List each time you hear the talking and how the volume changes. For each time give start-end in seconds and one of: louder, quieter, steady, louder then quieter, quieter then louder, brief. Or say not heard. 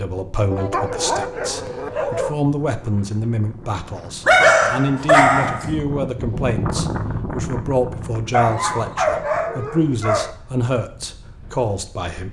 0.0-12.2 steady.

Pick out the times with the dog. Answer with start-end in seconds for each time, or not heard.
0.5-2.4, 4.2-5.7, 8.3-10.3.